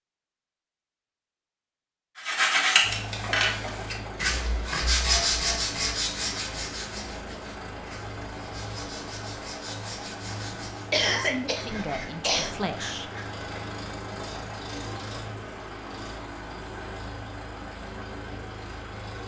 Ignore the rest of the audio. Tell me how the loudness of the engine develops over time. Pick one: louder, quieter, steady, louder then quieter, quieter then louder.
steady.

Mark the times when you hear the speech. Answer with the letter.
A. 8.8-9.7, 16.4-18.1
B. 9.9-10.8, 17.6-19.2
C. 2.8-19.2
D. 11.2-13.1
D.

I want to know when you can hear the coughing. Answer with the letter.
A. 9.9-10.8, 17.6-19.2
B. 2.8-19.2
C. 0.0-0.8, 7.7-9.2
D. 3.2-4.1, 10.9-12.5
D.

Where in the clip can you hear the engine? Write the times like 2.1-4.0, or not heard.
2.8-19.2.